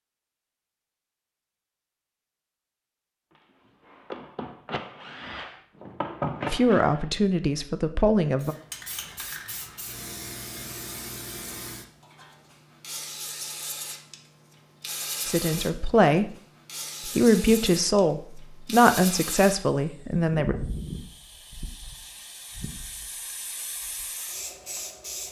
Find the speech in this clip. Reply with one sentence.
You can hear the speech from 6.5 to 8.6 s, from 15.2 to 16.4 s and from 17.1 to 20.6 s.